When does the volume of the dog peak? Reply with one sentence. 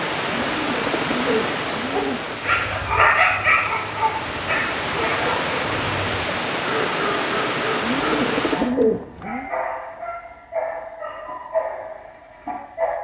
The loudest moment of the dog is at 3 seconds.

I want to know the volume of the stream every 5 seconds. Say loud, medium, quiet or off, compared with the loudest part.
loud, loud, off.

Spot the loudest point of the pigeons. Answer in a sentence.
The loudest moment of the pigeons is at 9 seconds.